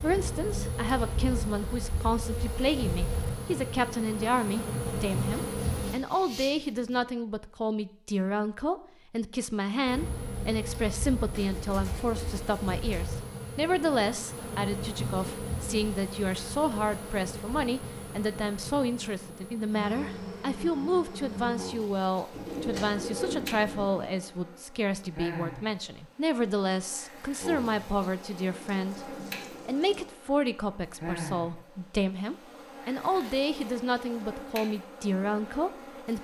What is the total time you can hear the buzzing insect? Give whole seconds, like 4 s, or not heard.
32 s.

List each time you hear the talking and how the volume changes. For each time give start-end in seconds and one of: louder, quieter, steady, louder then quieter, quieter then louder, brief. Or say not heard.
0.0-36.1 steady.